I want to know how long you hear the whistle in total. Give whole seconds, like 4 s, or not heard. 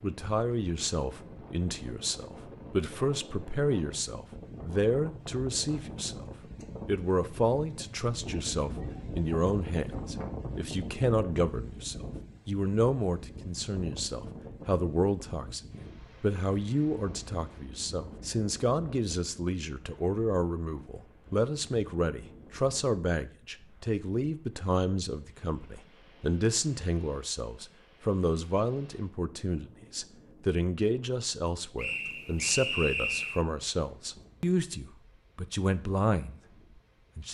2 s.